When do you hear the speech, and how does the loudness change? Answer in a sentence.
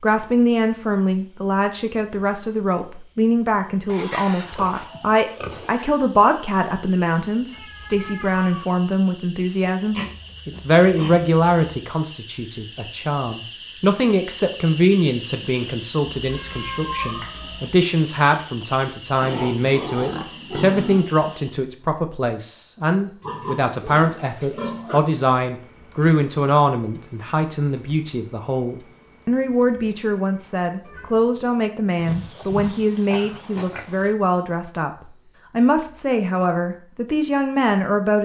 You can hear the speech from 0.0 to 38.1 s, at a steady volume.